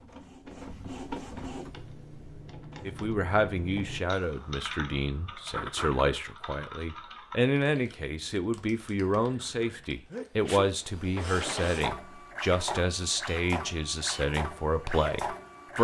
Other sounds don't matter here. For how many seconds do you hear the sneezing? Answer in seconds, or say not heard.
2 s.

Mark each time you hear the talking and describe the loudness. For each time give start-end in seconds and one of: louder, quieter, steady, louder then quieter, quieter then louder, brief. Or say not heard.
2.9-15.7 steady.